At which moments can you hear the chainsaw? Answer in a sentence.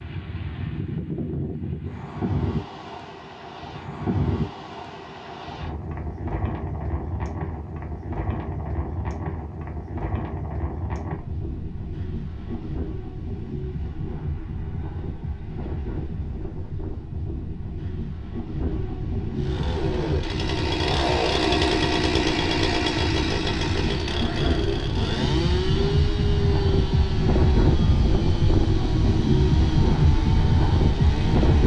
The chainsaw can be heard from 19.4 to 31.6 s.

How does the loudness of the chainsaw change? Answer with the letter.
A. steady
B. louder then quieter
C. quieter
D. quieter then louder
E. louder
C.